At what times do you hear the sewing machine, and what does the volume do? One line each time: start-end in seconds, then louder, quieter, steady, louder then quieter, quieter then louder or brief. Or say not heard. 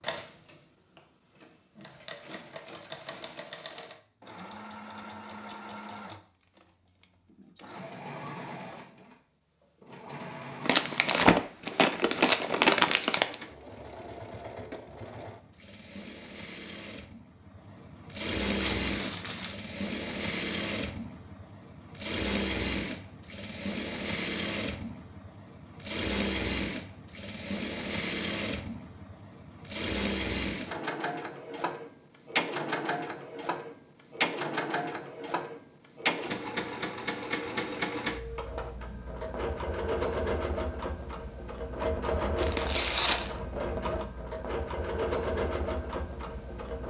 0.0-46.8 louder.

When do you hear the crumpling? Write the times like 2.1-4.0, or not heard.
10.7-13.3, 18.6-19.6, 42.4-43.4.